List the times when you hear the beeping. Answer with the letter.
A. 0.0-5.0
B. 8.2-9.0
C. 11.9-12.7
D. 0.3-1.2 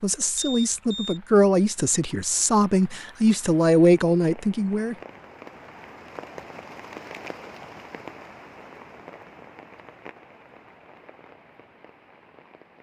D.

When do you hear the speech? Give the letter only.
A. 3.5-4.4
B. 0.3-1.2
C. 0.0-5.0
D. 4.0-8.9
C.